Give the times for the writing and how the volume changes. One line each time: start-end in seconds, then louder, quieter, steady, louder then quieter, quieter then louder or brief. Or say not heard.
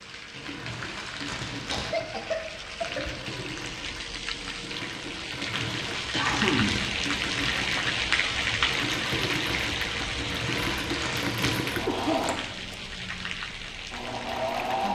not heard.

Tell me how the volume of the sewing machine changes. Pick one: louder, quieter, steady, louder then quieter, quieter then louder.
louder.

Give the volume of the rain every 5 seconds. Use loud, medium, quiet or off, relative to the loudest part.
medium, loud, medium.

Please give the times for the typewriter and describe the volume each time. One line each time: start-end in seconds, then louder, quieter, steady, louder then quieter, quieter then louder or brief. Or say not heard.
not heard.